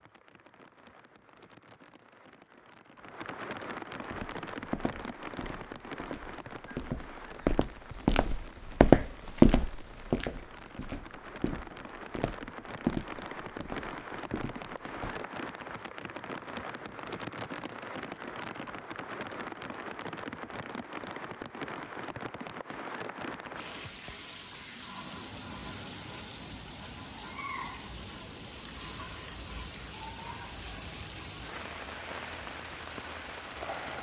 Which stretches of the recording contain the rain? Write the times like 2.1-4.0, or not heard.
0.0-33.9.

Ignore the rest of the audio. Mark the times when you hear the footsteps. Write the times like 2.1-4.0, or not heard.
4.1-15.2.